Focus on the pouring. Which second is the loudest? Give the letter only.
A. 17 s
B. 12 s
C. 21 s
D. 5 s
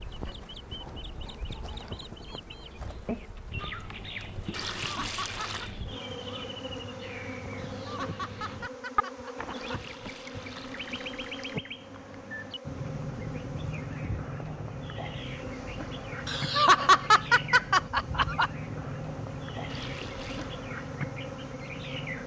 D.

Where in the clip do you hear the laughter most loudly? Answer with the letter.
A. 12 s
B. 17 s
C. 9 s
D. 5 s
B.